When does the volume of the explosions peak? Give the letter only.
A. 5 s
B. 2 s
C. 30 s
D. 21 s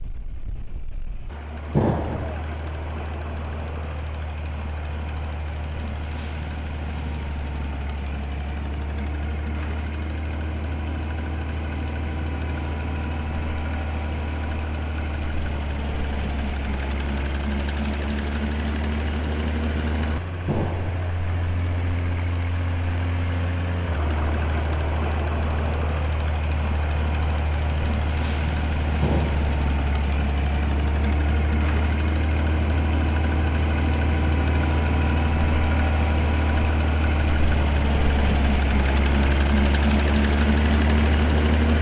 B.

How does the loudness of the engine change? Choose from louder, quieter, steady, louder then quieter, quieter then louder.
louder.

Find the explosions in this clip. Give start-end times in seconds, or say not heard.
1.7-2.5, 20.4-21.1, 29.0-29.5.